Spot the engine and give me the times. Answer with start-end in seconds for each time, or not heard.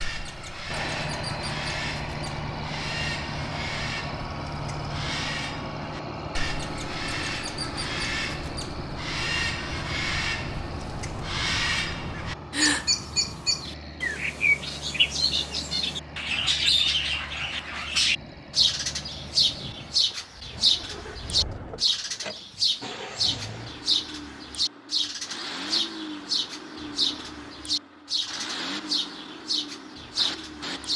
0.0-30.9.